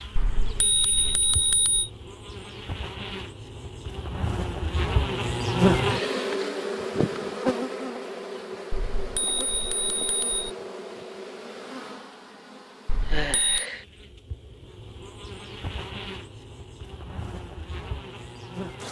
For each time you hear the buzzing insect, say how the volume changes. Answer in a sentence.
You can hear the buzzing insect from 0.0 to 18.8 s, getting louder then quieter.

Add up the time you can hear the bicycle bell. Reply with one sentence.
You can hear the bicycle bell for 4 seconds altogether.